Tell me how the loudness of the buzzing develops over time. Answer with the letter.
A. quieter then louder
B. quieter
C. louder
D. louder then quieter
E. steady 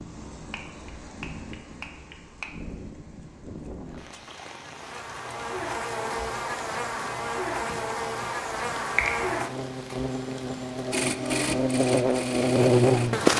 C.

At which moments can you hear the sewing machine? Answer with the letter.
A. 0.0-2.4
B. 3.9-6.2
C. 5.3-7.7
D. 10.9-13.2
D.